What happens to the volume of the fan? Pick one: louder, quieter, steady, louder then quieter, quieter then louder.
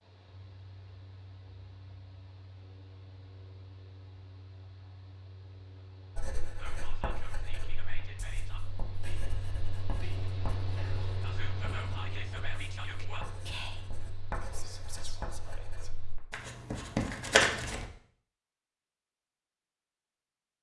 louder then quieter.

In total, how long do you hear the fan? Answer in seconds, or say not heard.
16 s.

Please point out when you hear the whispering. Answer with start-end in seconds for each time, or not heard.
6.5-15.9.